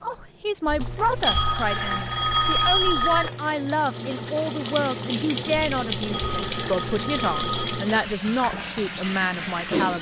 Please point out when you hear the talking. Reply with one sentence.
The talking can be heard from 0.0 to 9.9 s.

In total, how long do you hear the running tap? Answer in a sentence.
You can hear the running tap for 10 seconds altogether.